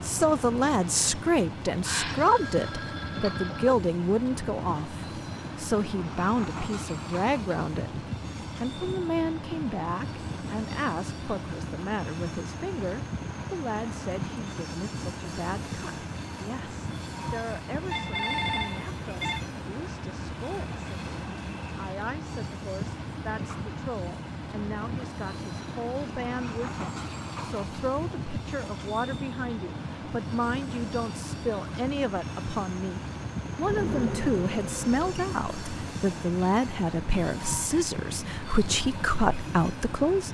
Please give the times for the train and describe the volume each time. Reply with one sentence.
You can hear the train from 0.0 to 40.2 s, at a steady volume.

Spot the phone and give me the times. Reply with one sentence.
You can hear the phone from 1.8 to 3.8 s, from 17.9 to 19.4 s and from 33.6 to 35.3 s.